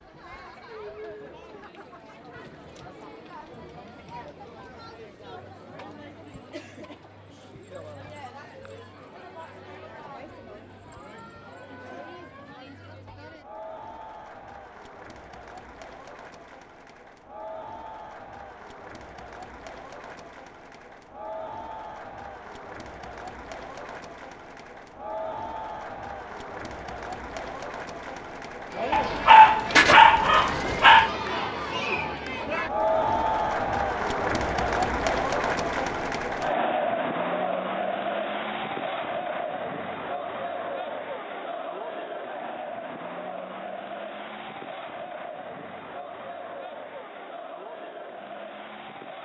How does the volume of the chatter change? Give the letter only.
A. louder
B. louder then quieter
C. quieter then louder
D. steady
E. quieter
B.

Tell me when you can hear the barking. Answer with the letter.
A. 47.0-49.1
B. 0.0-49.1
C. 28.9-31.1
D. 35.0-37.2
C.